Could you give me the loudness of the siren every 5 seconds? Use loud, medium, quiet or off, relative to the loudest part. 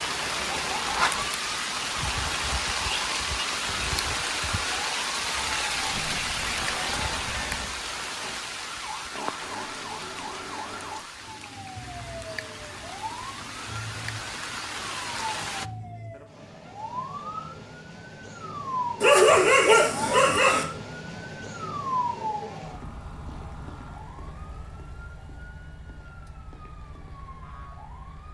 medium, medium, medium, loud, loud, quiet.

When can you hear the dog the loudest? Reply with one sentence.
The volume of the dog peaks at 19 seconds.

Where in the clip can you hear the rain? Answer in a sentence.
You can hear the rain from 0.0 to 15.7 s.